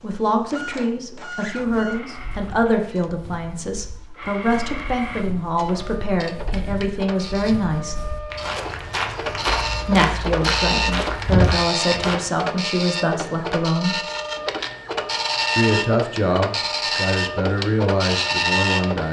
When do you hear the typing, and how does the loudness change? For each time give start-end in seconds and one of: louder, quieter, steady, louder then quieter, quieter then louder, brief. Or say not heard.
not heard.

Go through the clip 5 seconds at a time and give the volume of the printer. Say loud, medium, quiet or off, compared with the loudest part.
quiet, medium, loud, loud.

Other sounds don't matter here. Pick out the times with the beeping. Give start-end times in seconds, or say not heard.
not heard.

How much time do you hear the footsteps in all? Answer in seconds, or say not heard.
10 s.